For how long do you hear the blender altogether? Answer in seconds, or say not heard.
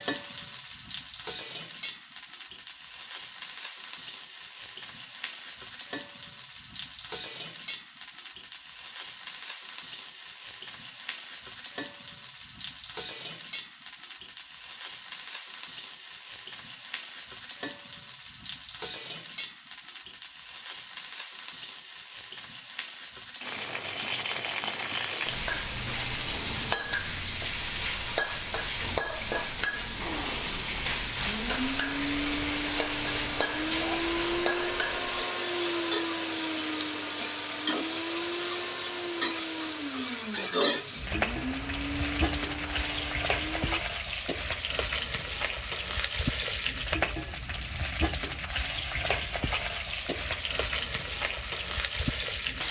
14 s.